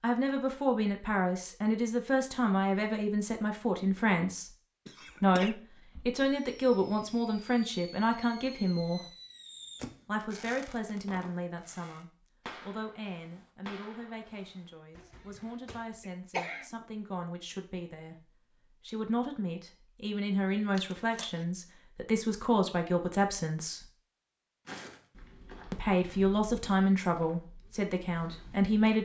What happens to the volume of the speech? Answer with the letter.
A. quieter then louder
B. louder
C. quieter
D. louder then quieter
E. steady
A.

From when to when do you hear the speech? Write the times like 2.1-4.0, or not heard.
0.0-4.5, 5.2-9.1, 10.1-23.9, 25.7-29.0.